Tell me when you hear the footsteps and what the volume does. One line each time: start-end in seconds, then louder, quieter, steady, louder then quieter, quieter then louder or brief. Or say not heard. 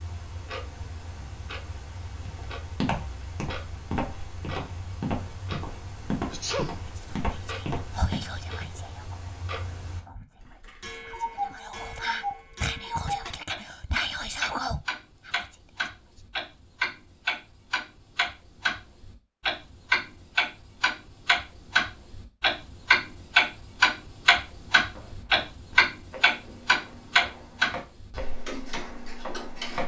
2.2-8.8 steady
24.8-29.8 louder.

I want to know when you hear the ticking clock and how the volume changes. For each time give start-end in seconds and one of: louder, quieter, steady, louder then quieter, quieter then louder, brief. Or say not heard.
0.0-29.8 louder.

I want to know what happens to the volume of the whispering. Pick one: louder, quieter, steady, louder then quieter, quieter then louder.
quieter then louder.